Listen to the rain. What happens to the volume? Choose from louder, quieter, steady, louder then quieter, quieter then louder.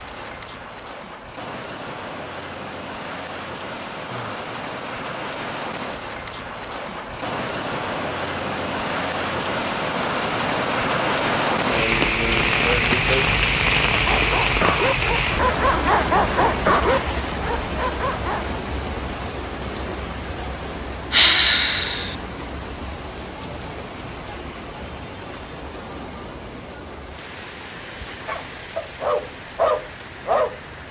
louder then quieter.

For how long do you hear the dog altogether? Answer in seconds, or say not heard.
7 s.